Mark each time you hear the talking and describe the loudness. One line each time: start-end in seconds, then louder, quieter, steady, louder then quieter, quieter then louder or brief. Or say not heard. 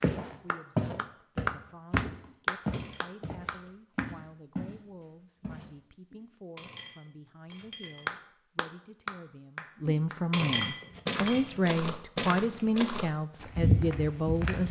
0.2-14.6 louder.